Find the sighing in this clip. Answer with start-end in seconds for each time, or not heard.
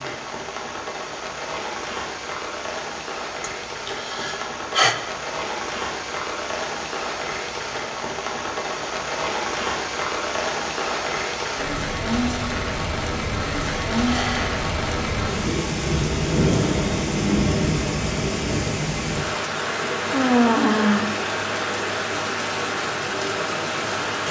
3.4-5.0, 14.1-14.6, 20.1-21.1.